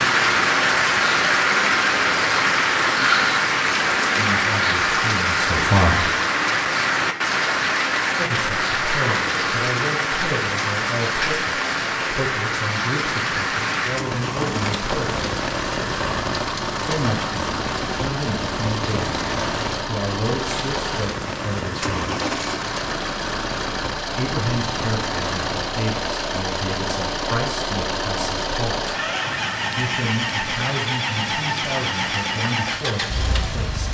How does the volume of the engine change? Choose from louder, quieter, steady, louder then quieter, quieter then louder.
louder.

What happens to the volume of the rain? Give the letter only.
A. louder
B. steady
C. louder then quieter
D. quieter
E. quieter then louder
D.